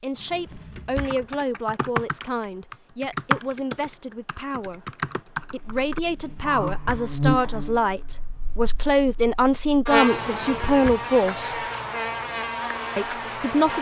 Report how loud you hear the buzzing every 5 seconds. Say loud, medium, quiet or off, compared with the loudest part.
off, loud, loud.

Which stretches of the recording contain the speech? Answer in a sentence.
You can hear the speech from 0.0 to 4.8 s, from 5.5 to 11.6 s and from 12.9 to 13.7 s.